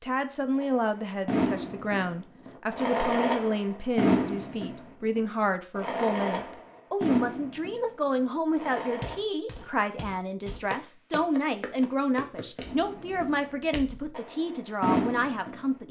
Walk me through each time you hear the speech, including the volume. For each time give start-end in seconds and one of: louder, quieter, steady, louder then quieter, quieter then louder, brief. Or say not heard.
0.0-15.8 steady.